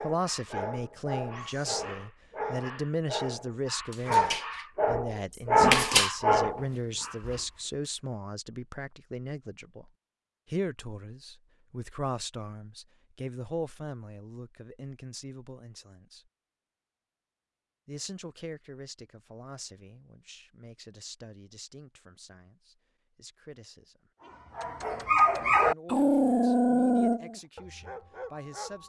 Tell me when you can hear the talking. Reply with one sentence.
You can hear the talking from 0.0 to 9.9 s, from 10.5 to 16.2 s, from 17.9 to 24.1 s and from 25.6 to 28.8 s.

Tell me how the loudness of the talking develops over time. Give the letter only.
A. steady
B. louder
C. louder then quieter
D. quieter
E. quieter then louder
D.